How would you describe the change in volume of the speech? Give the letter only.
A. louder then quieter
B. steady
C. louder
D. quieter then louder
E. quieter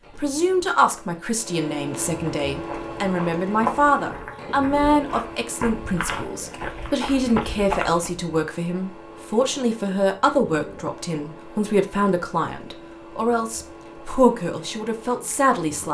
B.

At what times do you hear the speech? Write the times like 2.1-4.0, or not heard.
0.1-15.9.